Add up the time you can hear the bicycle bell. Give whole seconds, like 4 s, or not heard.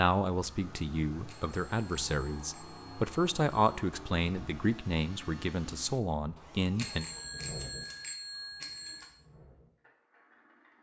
5 s.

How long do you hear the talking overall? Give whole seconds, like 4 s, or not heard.
7 s.